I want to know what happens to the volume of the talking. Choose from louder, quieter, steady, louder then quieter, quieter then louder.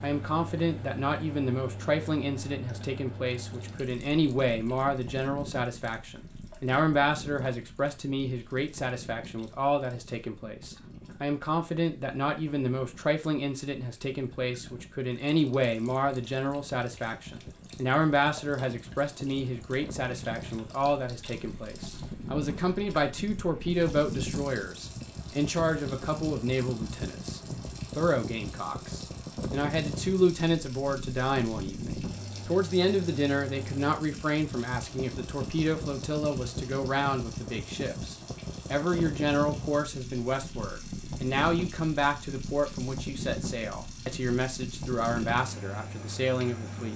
steady.